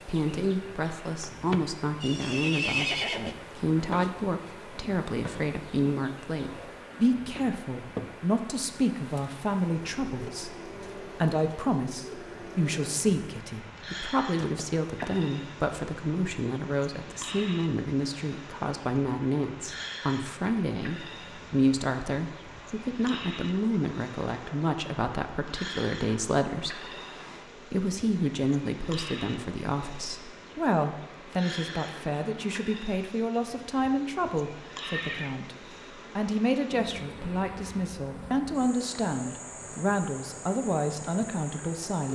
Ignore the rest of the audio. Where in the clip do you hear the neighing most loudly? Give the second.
3 s.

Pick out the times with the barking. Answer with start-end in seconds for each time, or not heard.
not heard.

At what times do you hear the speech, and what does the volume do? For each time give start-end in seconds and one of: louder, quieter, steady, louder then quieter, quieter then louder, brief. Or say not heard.
0.1-26.9 steady
27.6-35.5 steady
36.1-42.0 steady.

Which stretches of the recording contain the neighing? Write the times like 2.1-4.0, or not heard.
2.0-3.4, 14.3-15.1, 34.8-35.4.